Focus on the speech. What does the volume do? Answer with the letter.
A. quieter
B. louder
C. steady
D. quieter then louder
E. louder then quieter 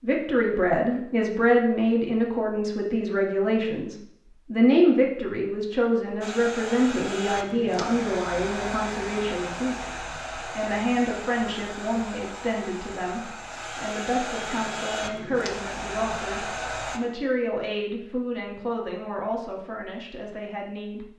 A.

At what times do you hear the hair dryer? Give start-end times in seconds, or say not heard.
6.2-17.0.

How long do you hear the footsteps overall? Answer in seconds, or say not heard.
not heard.